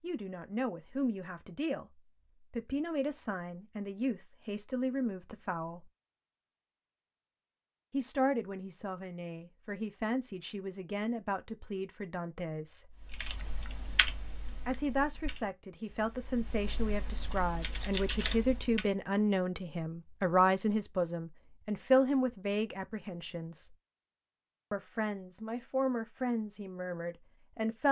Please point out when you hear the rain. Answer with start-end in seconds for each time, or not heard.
not heard.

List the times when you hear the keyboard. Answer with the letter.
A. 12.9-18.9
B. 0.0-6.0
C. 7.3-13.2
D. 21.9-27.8
A.